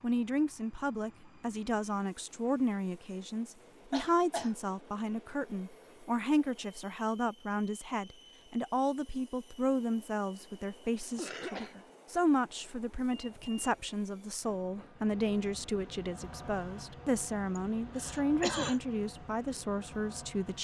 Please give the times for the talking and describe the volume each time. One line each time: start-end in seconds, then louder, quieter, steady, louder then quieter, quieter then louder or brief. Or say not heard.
0.0-20.5 steady.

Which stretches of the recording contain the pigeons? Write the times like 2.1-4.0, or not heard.
not heard.